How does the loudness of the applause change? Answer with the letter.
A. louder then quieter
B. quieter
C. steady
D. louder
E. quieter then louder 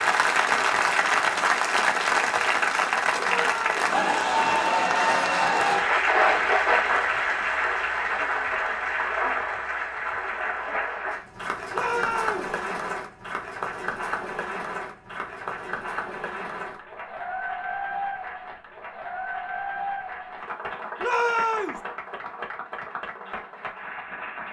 B.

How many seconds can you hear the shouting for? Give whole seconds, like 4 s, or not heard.
2 s.